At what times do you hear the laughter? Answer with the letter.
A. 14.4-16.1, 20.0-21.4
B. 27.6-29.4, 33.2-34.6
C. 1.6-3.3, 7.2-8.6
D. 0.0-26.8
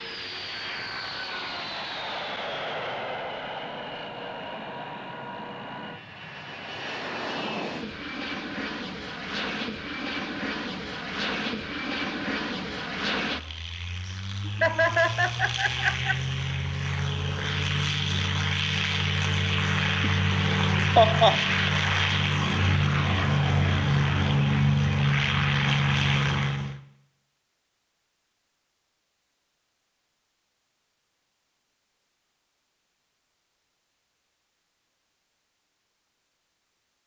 A.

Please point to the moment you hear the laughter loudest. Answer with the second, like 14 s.
21 s.